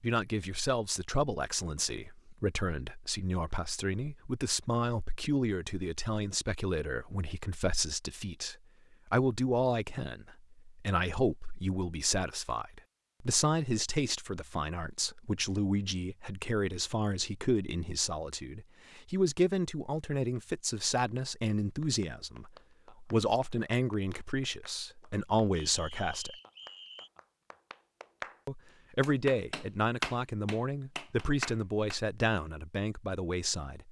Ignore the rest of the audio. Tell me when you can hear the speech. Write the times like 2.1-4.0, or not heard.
0.0-26.4, 28.4-33.8.